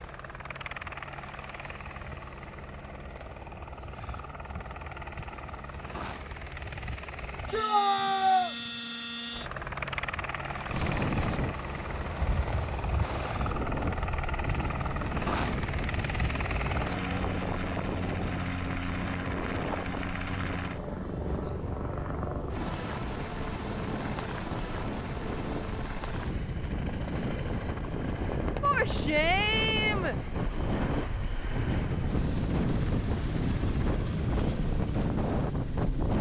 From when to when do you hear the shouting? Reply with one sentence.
You can hear the shouting from 7.5 to 8.6 s and from 28.6 to 30.1 s.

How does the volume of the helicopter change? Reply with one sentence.
The volume of the helicopter goes up, then down.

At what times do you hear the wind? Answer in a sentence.
The wind can be heard from 10.7 to 36.1 s.